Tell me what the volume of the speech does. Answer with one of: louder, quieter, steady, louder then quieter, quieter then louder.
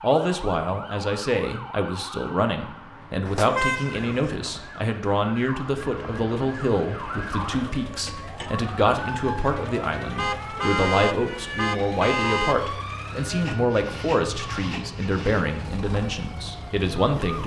steady.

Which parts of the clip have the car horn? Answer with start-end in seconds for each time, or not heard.
3.2-4.3, 10.2-12.6.